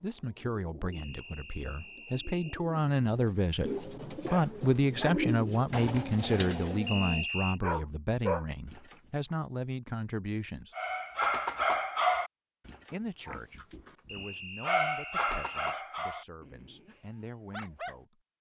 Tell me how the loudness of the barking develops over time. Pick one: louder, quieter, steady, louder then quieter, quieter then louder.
louder then quieter.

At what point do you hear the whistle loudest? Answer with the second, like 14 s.
7 s.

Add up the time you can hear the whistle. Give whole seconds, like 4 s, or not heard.
4 s.